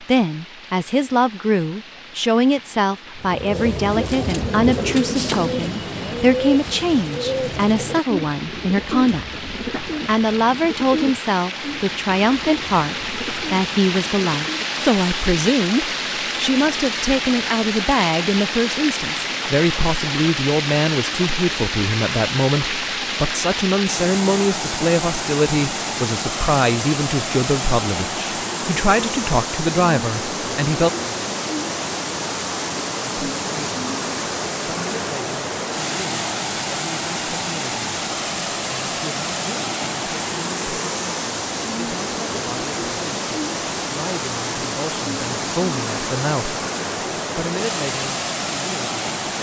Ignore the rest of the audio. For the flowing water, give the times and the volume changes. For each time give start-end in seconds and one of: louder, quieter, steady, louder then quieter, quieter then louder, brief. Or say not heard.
0.0-49.3 louder.